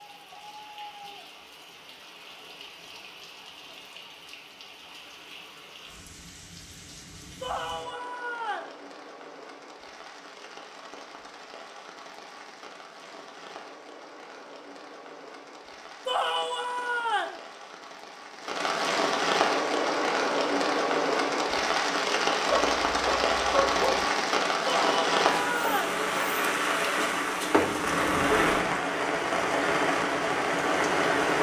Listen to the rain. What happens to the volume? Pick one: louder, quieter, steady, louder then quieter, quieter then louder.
louder.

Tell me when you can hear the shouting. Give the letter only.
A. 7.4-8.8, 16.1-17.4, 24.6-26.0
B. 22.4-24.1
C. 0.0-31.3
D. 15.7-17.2
A.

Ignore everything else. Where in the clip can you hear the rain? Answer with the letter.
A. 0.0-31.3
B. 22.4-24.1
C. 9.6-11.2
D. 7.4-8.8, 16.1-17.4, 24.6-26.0
A.